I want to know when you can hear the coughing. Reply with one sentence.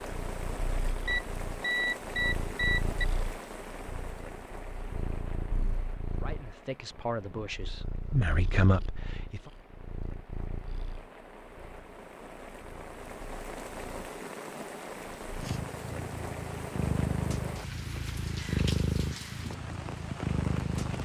You can't hear the coughing here.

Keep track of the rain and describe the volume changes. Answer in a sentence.
The volume of the rain goes down, then up.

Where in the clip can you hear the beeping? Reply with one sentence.
You can hear the beeping from 1.1 to 3.0 s.